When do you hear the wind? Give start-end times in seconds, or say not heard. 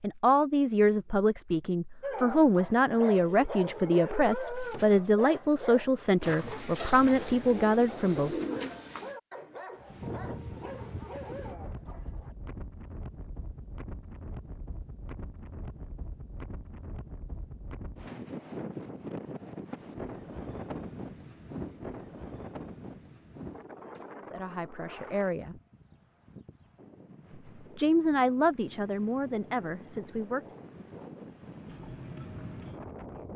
9.8-33.3.